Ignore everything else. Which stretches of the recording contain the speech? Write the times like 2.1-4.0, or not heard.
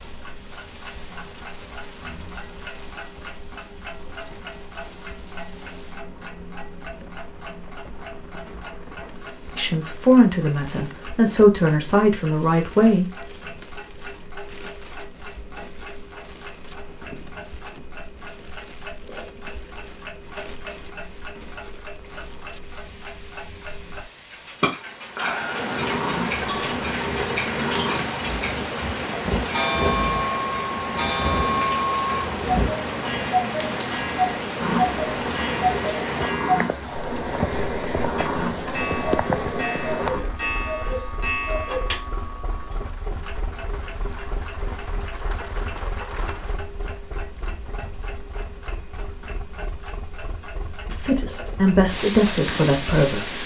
9.6-13.2, 50.9-53.4.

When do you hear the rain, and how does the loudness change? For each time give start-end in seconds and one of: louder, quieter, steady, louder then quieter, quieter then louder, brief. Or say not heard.
0.0-53.4 louder then quieter.